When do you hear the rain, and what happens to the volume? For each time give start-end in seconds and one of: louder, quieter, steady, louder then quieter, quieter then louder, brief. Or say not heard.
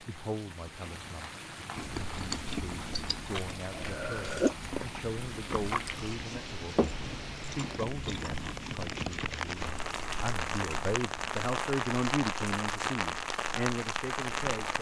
0.0-14.7 louder.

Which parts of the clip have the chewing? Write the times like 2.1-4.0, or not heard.
1.8-11.5.